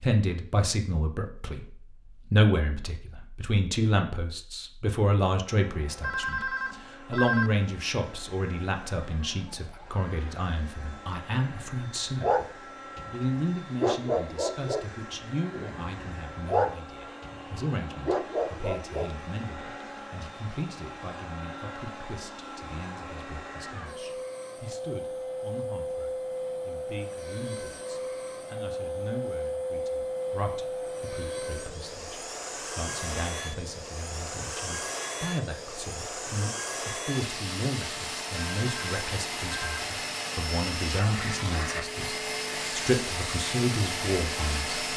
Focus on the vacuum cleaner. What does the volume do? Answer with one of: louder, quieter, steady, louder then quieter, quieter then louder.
louder.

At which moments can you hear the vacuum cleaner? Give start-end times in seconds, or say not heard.
5.5-44.9.